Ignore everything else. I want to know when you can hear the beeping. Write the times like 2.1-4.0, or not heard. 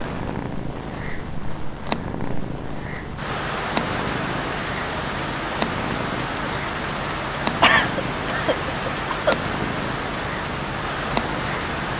not heard.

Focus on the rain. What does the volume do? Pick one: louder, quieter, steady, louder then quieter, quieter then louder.
louder.